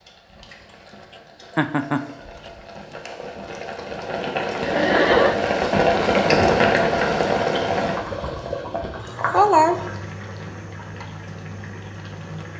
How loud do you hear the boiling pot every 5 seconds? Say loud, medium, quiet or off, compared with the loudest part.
medium, loud, quiet.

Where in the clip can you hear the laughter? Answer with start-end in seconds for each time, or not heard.
1.6-2.0, 4.6-5.3, 9.0-9.9.